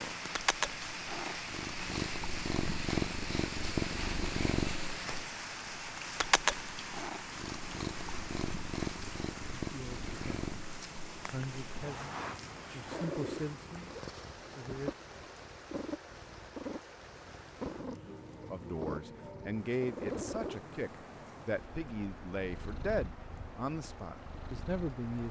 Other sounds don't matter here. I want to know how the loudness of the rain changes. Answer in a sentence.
The loudness of the rain goes down.